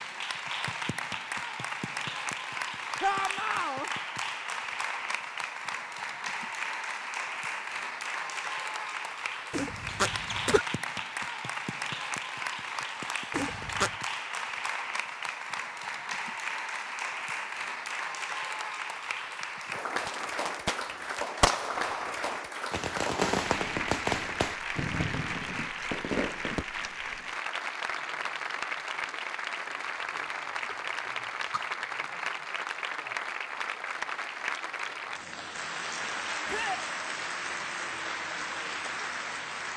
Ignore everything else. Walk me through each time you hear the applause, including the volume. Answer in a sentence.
You can hear the applause from 0.0 to 39.7 s, at a steady volume.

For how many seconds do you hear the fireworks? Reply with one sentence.
The fireworks can be heard for 7 seconds in total.